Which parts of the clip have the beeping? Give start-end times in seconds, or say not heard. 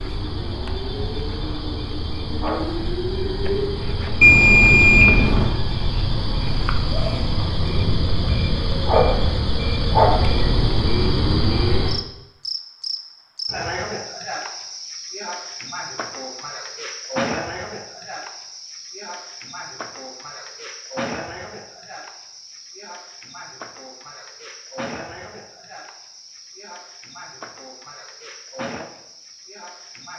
4.2-5.5.